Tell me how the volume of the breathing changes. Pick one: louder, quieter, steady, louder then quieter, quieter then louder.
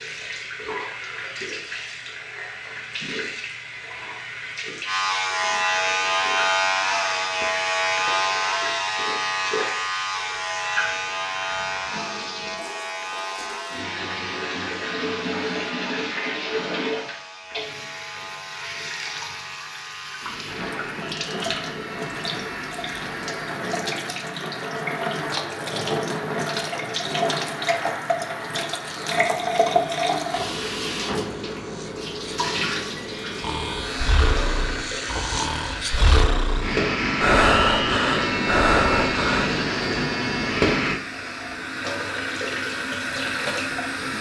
louder.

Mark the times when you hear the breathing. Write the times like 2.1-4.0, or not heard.
33.4-39.5.